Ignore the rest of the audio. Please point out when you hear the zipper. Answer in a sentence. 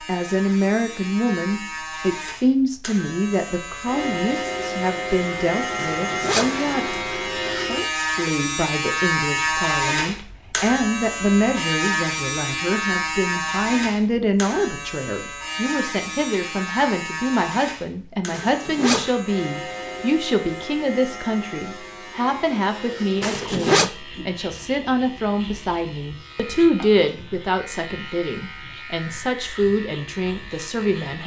The zipper can be heard from 5.9 to 6.8 s, from 18.3 to 19.2 s and from 23.2 to 23.9 s.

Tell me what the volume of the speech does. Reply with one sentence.
The volume of the speech stays about the same.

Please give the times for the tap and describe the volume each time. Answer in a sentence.
The tap can't be heard in this clip.